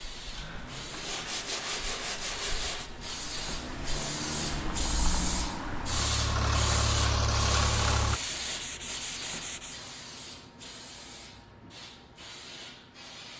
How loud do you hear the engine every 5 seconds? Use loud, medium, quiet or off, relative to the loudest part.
medium, loud, off.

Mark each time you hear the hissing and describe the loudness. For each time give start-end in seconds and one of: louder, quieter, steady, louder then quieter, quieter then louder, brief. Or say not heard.
0.0-13.3 louder then quieter.